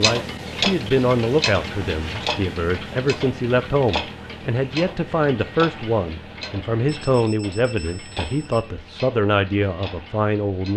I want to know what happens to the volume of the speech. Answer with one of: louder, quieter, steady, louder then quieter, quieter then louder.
steady.